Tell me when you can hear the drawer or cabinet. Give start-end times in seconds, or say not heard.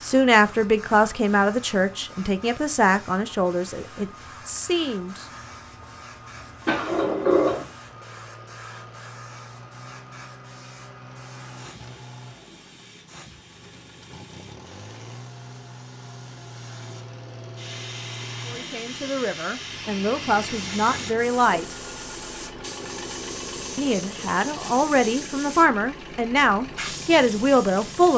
6.7-7.7.